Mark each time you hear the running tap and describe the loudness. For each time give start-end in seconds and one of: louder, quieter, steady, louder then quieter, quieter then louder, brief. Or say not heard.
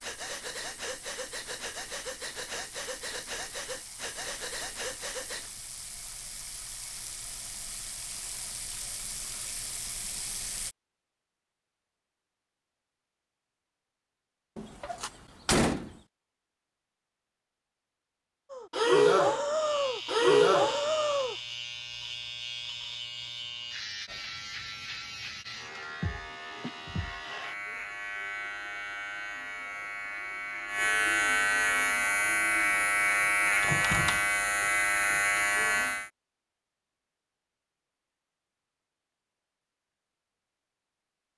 0.0-10.8 louder.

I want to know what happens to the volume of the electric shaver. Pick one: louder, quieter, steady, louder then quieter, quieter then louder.
louder.